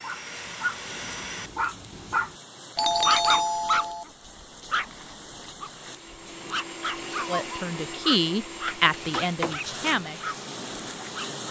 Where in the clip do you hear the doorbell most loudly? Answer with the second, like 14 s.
3 s.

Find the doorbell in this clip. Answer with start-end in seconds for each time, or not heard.
2.8-4.0, 8.7-9.7.